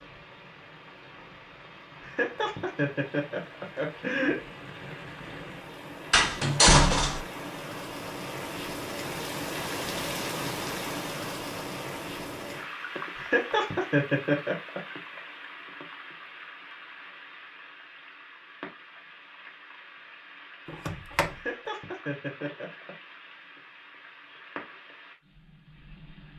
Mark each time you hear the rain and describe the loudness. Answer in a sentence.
The rain can be heard from 0.0 to 26.3 s, getting louder then quieter.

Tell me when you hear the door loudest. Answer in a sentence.
The loudest moment of the door is at 7 seconds.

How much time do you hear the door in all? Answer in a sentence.
The door can be heard for 2 seconds in total.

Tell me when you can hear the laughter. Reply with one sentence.
You can hear the laughter from 2.0 to 4.5 s, from 13.2 to 14.8 s and from 21.3 to 22.9 s.